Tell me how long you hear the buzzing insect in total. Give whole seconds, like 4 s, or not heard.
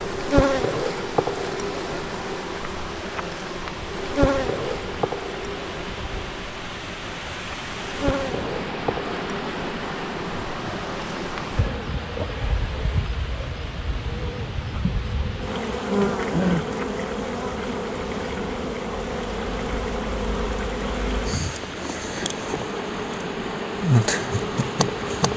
25 s.